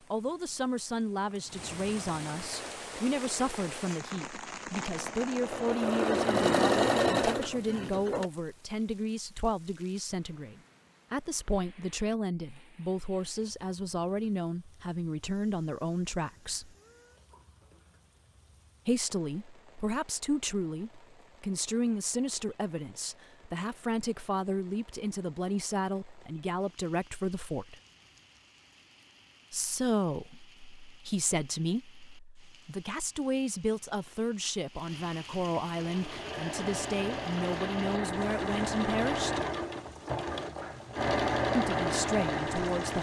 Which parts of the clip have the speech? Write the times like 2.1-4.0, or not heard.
0.1-16.7, 18.9-27.8, 29.5-39.4, 41.5-42.9.